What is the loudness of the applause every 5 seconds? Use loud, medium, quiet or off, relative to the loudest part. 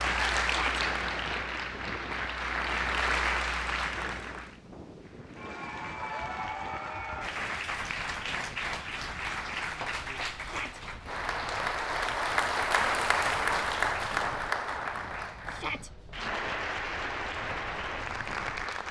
loud, medium, loud, medium.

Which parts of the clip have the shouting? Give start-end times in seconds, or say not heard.
0.4-0.8, 10.3-10.8, 15.4-15.9.